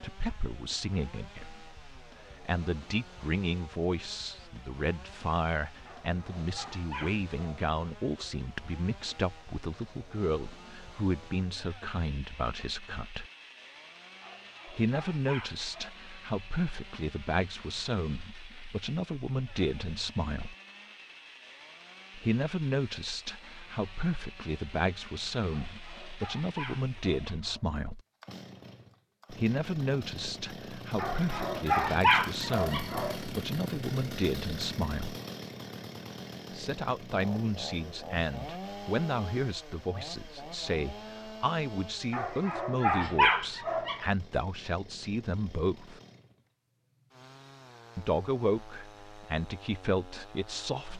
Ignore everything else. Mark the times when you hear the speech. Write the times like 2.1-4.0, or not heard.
0.0-13.3, 14.7-20.6, 22.1-28.0, 29.3-35.2, 36.5-46.0, 48.0-50.9.